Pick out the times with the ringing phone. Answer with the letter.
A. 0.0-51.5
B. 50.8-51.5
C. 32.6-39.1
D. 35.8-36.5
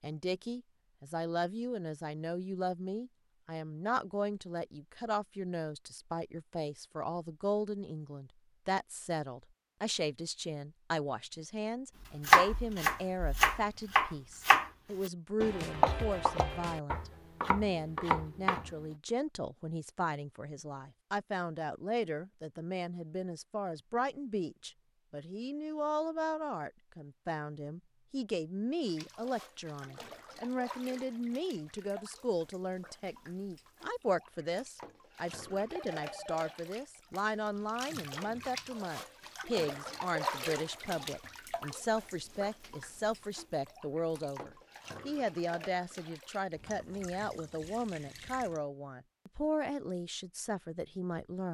D.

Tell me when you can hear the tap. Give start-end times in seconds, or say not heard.
28.9-48.6.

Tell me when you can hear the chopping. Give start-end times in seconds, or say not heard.
12.2-18.8.